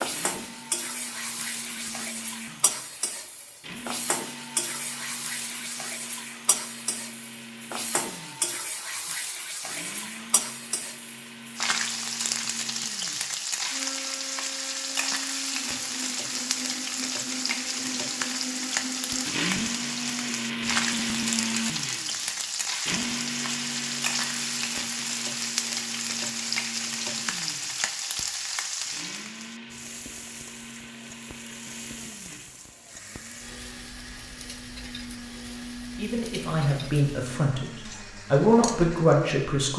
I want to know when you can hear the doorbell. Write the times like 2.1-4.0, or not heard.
not heard.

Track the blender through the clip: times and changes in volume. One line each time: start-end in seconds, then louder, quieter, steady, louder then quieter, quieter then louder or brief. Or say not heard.
0.0-39.3 louder then quieter.